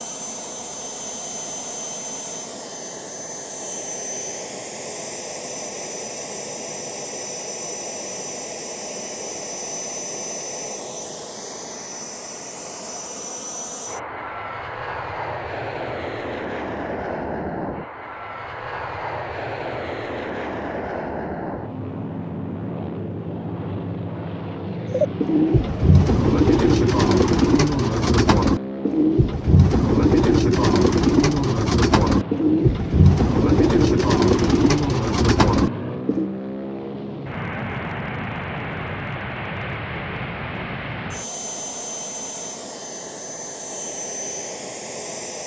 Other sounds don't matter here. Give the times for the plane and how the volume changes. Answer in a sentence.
You can hear the plane from 0.0 to 45.4 s, at a steady volume.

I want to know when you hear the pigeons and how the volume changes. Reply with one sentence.
The pigeons can be heard from 24.9 to 36.3 s, at a steady volume.